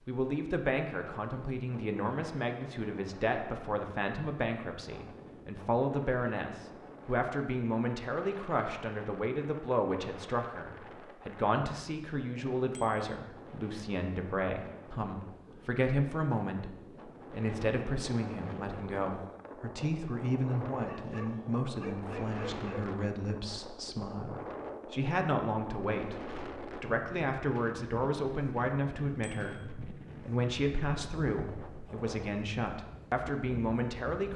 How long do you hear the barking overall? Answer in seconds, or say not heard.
2 s.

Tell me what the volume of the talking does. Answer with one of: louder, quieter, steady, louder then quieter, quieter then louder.
steady.